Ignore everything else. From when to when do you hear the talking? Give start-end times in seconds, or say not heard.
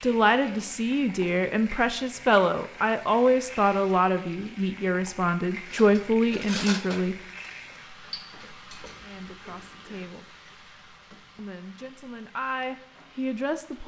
0.0-7.2, 9.0-10.2, 11.3-13.8.